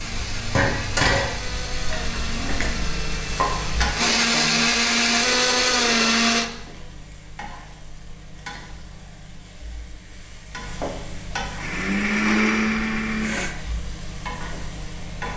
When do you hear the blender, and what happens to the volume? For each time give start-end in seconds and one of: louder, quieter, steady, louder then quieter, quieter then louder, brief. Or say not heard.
0.0-6.5 louder
11.6-13.6 brief.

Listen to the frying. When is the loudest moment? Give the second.
1 s.